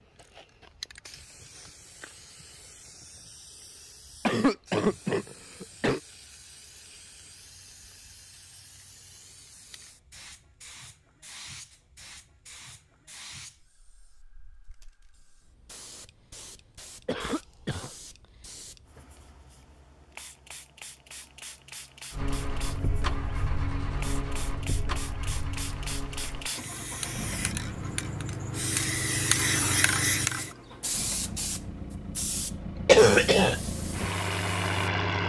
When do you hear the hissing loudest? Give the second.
30 s.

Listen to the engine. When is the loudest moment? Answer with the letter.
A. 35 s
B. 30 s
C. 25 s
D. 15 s
A.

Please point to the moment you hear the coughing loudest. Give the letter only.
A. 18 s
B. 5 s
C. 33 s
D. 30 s
C.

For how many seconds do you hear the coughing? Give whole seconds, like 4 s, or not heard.
3 s.